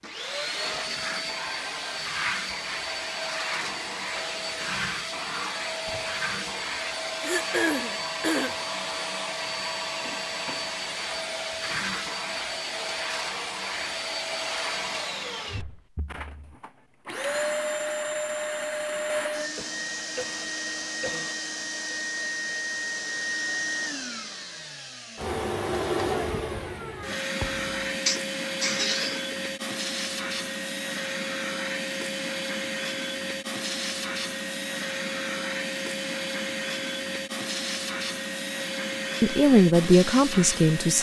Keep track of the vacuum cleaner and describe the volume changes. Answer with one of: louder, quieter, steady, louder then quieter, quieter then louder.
steady.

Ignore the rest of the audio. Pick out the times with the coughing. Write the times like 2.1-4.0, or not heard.
7.2-8.6, 19.4-21.4, 28.1-29.2.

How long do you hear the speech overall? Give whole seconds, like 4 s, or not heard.
2 s.